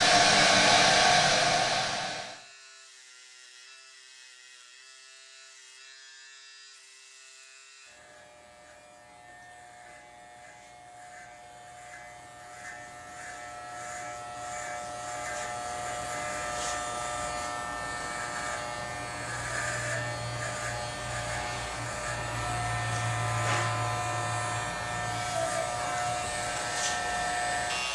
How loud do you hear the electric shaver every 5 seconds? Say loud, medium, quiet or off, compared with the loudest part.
quiet, quiet, medium, loud, loud, loud.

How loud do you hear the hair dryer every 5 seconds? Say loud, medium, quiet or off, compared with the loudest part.
loud, off, off, off, quiet, quiet.